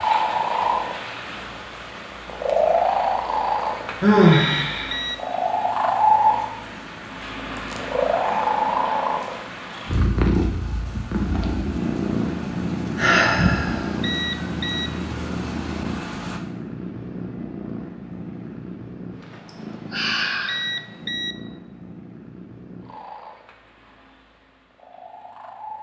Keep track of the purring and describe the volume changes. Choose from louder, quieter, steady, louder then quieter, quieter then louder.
quieter.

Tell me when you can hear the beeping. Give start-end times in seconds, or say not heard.
4.3-5.2, 14.0-14.9, 20.4-21.4.